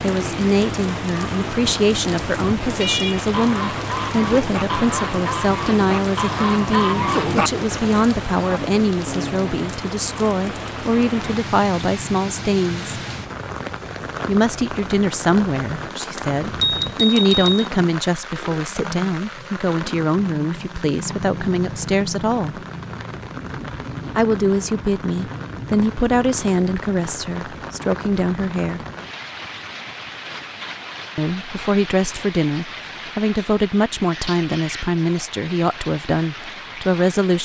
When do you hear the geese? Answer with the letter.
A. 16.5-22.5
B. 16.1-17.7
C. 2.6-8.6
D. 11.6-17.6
C.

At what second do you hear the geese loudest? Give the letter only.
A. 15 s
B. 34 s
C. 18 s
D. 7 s
D.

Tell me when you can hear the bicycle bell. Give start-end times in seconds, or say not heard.
16.1-17.7.